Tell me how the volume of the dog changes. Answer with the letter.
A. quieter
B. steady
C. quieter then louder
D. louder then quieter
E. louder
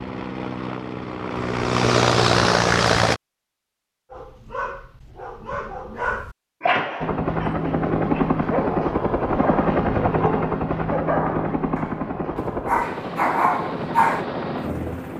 E.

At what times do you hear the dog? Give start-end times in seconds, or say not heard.
4.1-14.2.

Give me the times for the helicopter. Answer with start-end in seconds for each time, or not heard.
0.0-3.2, 7.0-15.1.